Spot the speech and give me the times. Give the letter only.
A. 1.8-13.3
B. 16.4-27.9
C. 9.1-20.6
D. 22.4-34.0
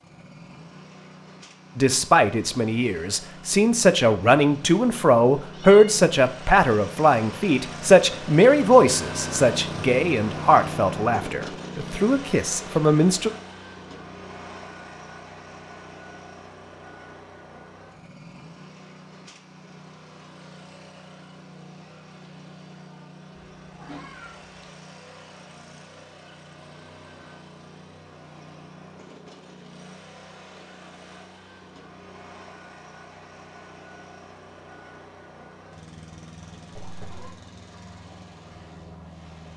A.